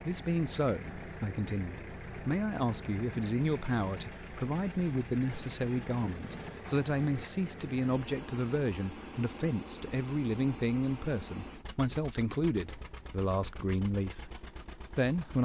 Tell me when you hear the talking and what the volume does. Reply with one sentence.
You can hear the talking from 0.0 to 15.4 s, at a steady volume.